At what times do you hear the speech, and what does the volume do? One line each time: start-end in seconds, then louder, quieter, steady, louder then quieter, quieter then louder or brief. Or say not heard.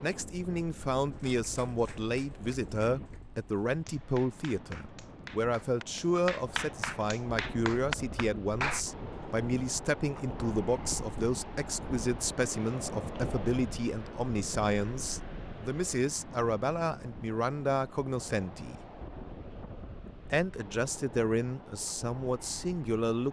0.0-18.8 steady
20.3-23.2 brief.